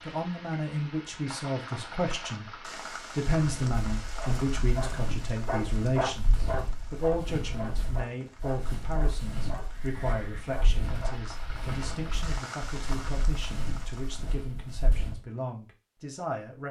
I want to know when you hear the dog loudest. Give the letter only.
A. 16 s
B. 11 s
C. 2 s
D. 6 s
D.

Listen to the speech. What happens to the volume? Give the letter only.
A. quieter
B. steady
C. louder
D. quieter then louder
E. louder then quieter
A.